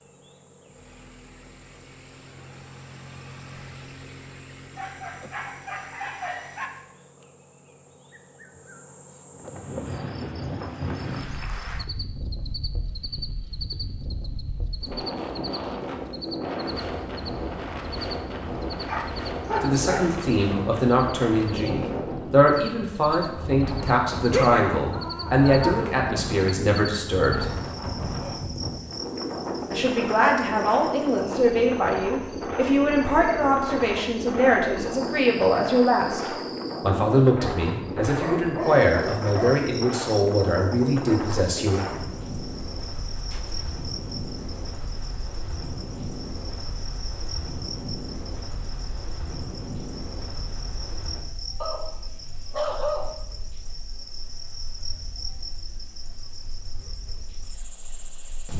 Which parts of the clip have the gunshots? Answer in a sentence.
The gunshots can be heard from 43.3 to 43.8 s.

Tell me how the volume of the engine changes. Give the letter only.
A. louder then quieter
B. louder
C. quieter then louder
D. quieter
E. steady
A.